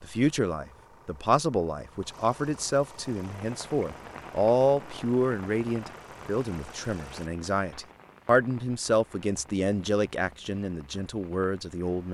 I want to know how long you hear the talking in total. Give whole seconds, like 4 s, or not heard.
12 s.